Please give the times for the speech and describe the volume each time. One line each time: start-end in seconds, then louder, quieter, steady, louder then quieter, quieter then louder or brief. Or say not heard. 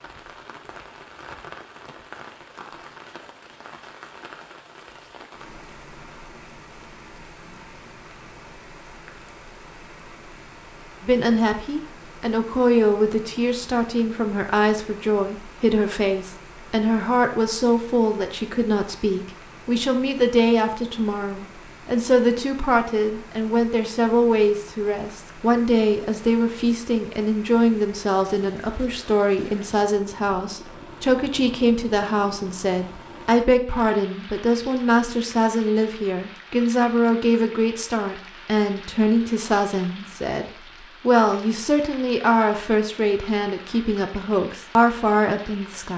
11.0-45.9 steady.